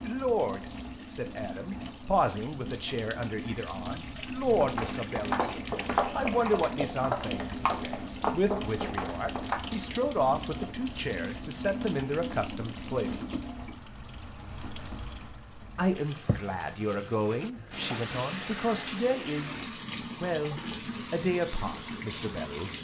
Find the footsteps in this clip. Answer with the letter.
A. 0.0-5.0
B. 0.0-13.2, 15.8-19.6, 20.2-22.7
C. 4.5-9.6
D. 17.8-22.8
C.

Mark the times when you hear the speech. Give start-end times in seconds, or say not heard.
0.0-13.2, 15.8-19.6, 20.2-22.7.